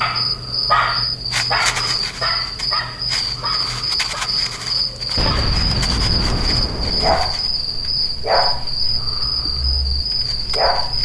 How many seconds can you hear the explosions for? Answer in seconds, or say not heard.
2 s.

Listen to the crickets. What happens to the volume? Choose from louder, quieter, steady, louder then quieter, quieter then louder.
steady.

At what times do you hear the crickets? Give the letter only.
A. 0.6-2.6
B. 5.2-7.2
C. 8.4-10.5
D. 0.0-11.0
D.